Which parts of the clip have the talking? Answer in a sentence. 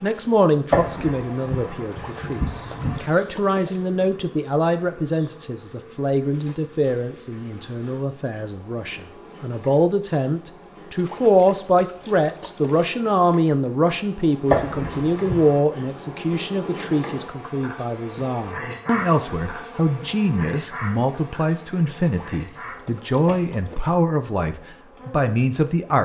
The talking can be heard from 0.0 to 25.9 s.